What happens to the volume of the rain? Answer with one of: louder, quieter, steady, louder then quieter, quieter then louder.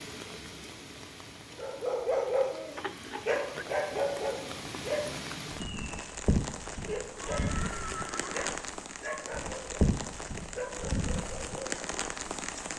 louder.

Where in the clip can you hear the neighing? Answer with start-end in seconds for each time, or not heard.
2.8-3.6, 7.2-8.5.